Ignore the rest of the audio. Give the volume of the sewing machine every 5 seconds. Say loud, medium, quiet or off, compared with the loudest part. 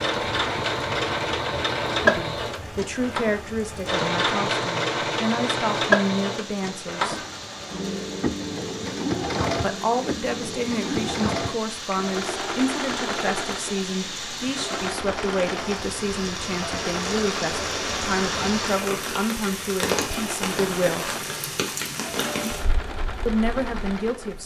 loud, loud, medium, medium, medium.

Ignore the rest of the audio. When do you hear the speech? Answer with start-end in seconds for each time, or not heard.
2.0-7.2, 9.6-21.1, 23.2-24.4.